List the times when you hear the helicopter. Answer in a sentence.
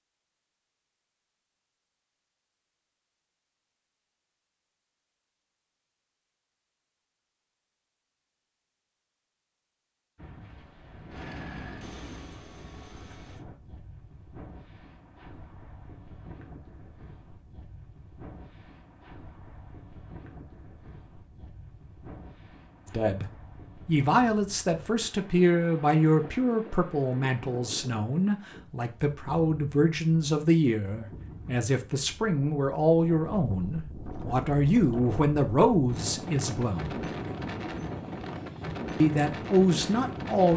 The helicopter can be heard from 11.1 to 13.4 s.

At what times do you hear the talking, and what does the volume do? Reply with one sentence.
You can hear the talking from 22.9 to 37.1 s, at a steady volume; and briefly from 39.0 to 40.5 s.